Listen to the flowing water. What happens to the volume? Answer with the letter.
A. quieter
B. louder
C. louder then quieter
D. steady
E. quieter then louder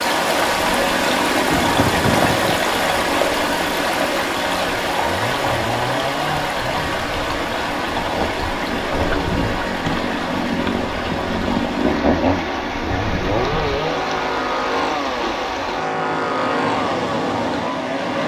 A.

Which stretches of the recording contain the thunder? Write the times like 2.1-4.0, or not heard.
1.4-2.6.